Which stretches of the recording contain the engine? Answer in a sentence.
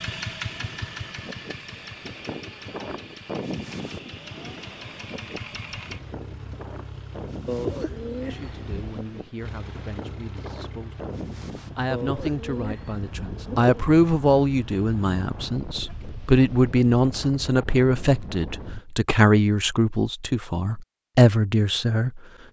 You can hear the engine from 0.0 to 15.6 s.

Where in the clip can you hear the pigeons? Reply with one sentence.
The pigeons can be heard from 7.5 to 9.1 s and from 11.9 to 13.8 s.